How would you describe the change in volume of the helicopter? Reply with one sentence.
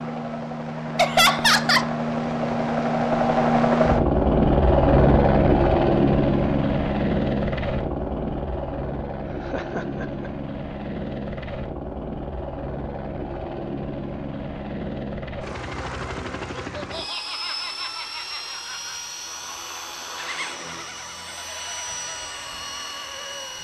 The loudness of the helicopter goes down.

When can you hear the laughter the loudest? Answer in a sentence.
The volume of the laughter peaks at 1 second.